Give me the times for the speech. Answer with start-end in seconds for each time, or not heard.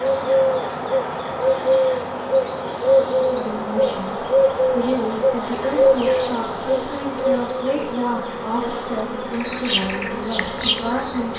3.4-11.3.